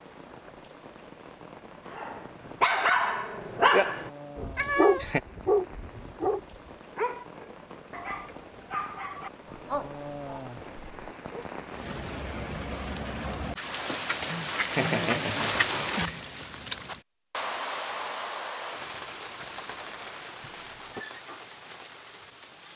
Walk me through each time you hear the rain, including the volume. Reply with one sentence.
The rain can be heard from 0.0 to 22.7 s, getting louder then quieter.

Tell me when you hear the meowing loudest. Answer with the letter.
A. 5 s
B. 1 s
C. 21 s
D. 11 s
A.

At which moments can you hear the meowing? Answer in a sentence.
You can hear the meowing from 4.5 to 5.2 s and from 20.4 to 21.1 s.